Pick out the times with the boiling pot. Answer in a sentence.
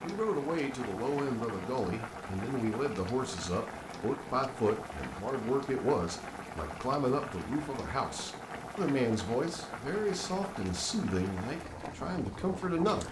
The boiling pot can be heard from 0.0 to 13.0 s.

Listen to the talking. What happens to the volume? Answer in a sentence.
The volume of the talking stays about the same.